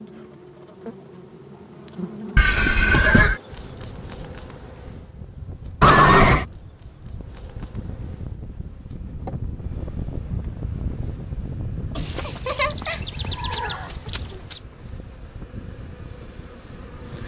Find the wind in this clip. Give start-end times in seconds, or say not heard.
3.5-17.2.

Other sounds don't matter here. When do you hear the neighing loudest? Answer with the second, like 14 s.
6 s.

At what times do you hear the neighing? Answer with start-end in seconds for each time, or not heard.
2.4-3.4, 5.8-6.5, 11.9-14.6.